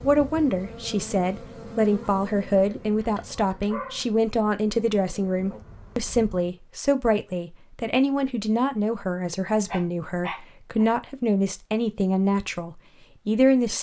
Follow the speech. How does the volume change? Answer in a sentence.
The loudness of the speech stays about the same.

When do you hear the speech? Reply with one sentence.
The speech can be heard from 0.0 to 13.7 s.